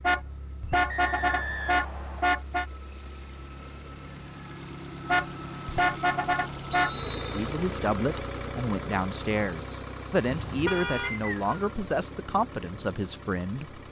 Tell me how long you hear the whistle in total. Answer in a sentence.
You can hear the whistle for 3 seconds altogether.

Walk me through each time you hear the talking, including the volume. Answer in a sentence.
You can hear the talking from 7.3 to 13.8 s, at a steady volume.